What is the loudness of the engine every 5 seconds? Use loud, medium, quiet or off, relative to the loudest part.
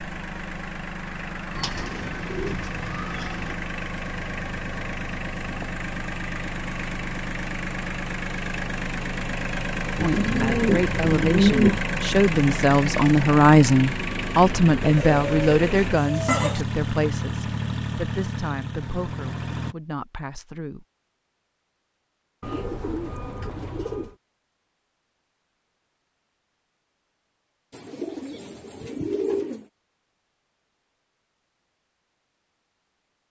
medium, loud, loud, loud, off, off, off.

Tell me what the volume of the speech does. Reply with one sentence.
The loudness of the speech goes up, then down.